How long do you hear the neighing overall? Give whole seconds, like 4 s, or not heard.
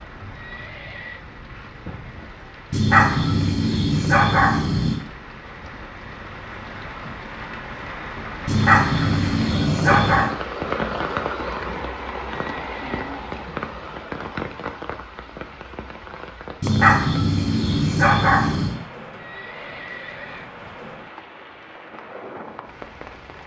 3 s.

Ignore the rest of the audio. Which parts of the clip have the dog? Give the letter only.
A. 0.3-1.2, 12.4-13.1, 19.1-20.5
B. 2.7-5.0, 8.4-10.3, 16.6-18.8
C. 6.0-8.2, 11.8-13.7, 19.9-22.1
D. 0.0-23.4
B.